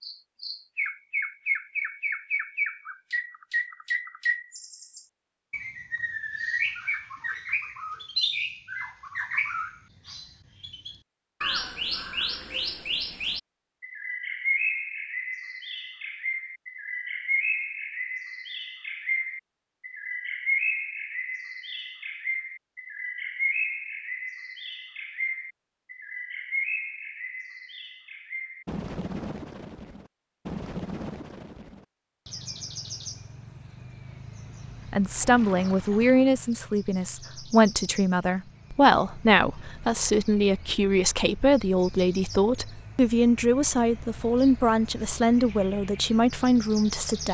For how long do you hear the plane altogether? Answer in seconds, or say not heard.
not heard.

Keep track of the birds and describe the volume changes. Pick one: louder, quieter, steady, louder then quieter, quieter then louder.
quieter.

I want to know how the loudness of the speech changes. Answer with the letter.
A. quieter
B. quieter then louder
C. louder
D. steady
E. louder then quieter
D.